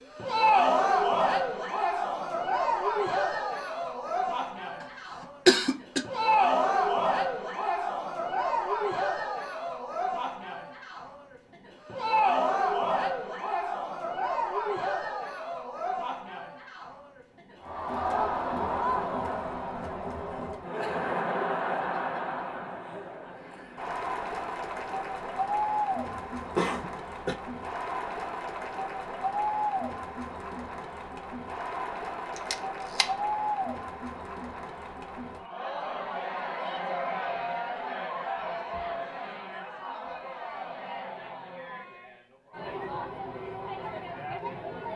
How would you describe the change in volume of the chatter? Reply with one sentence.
The volume of the chatter goes down.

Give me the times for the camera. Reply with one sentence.
You can hear the camera from 32.4 to 33.1 s.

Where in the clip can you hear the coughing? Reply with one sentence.
The coughing can be heard from 5.5 to 6.0 s and from 26.1 to 27.4 s.